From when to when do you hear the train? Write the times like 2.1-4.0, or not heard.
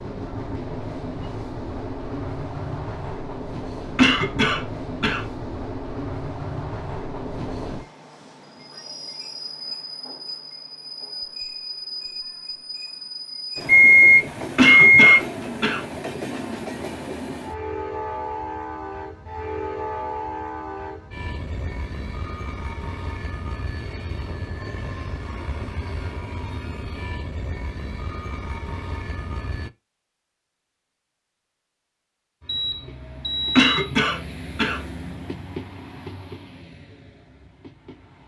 0.0-29.7, 32.4-38.2.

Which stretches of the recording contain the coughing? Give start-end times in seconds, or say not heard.
4.0-5.2, 14.6-15.8, 33.5-34.8.